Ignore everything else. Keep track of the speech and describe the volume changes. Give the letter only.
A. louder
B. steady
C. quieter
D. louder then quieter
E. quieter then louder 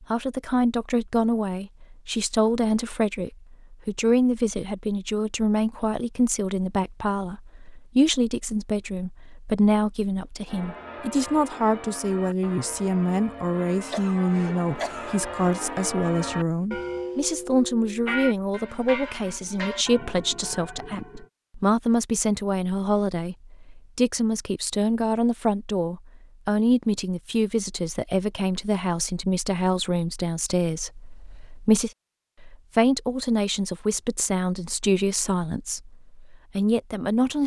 B.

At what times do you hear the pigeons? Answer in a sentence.
You can't hear the pigeons here.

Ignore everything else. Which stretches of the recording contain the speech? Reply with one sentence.
The speech can be heard from 0.0 to 37.4 s.